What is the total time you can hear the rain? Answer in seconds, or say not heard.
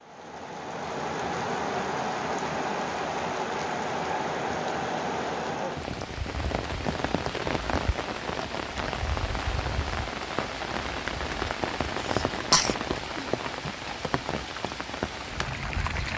16 s.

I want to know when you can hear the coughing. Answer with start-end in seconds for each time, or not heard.
11.9-13.3.